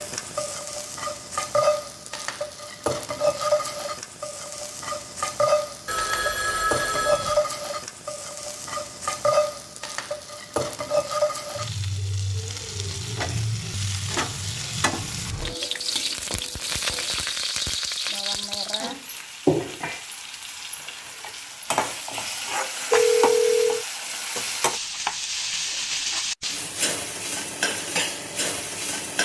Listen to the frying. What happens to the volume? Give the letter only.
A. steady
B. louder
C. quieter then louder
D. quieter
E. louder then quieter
A.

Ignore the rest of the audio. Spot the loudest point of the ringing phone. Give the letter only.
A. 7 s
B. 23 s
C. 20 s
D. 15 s
B.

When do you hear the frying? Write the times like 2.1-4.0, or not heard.
0.0-29.1.